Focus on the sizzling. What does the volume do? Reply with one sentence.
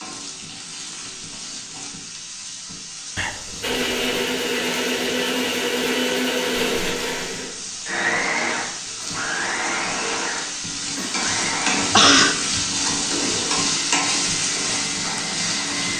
The volume of the sizzling goes up.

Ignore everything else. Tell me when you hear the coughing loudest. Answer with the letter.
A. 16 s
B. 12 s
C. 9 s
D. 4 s
B.